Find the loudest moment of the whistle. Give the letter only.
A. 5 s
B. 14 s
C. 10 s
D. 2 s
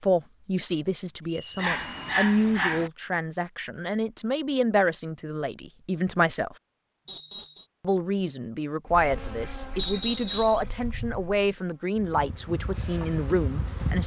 C.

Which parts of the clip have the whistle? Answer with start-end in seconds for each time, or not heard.
1.2-2.1, 7.0-7.7, 9.8-10.6.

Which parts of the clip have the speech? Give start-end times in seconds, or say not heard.
0.0-6.5, 7.8-14.0.